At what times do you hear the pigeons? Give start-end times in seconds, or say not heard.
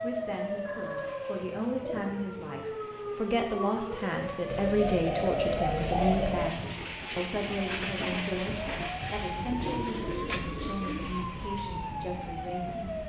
0.7-2.1, 4.5-6.5, 9.6-11.2.